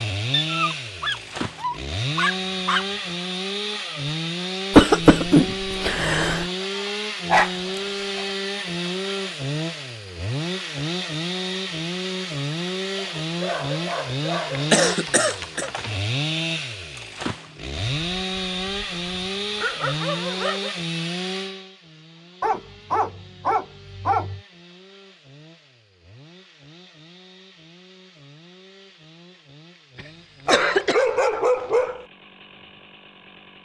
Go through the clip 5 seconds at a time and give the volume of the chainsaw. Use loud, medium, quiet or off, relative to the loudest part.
loud, loud, loud, loud, medium, quiet, quiet.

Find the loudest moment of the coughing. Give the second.
5 s.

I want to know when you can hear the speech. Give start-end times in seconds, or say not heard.
not heard.